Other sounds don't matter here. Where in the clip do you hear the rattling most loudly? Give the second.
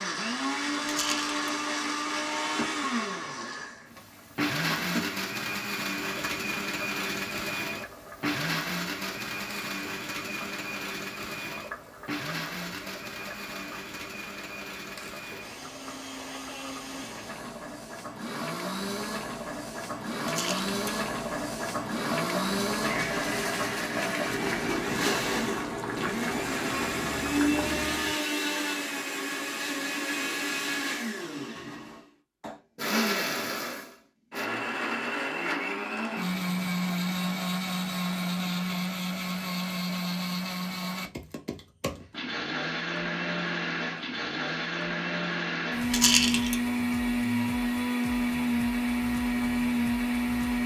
46 s.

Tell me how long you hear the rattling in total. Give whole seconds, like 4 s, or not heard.
2 s.